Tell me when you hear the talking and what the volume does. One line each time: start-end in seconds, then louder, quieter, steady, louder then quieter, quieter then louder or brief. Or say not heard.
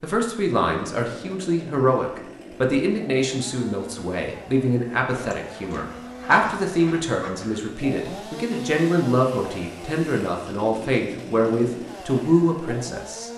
0.0-13.3 steady.